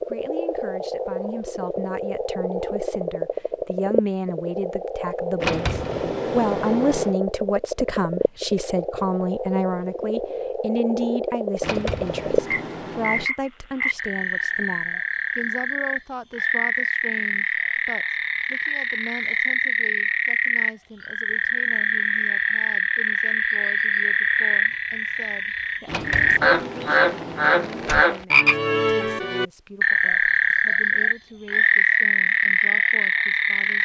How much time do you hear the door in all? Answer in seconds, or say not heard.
6 s.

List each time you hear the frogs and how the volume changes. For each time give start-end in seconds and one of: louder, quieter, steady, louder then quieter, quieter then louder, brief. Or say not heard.
0.0-33.8 louder.